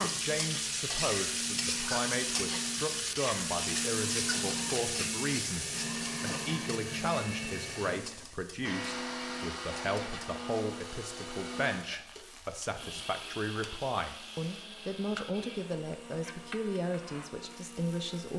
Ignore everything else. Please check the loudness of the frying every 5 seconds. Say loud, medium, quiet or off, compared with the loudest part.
loud, medium, quiet, quiet.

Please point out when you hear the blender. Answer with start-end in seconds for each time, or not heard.
0.0-18.3.